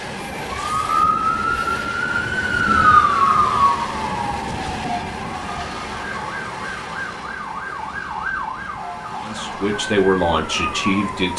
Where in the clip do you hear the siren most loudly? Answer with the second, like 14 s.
3 s.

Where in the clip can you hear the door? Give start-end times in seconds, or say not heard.
not heard.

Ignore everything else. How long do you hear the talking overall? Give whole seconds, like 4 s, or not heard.
2 s.